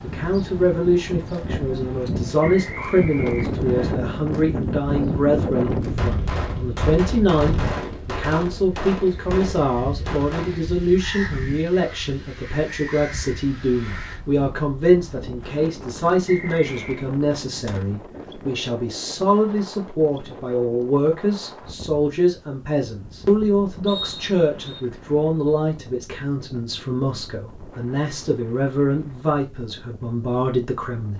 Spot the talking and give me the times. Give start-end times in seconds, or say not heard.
0.0-31.1.